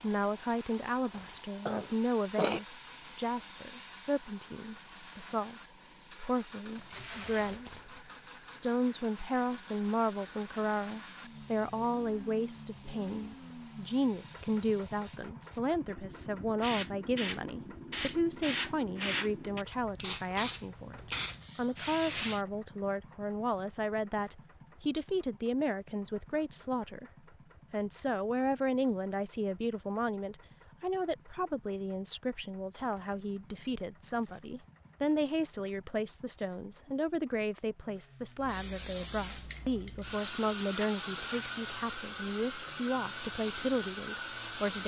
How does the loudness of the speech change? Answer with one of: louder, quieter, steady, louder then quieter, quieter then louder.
steady.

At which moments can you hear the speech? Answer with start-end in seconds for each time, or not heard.
0.0-27.1, 27.7-44.8.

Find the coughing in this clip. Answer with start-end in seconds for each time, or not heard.
1.1-2.6.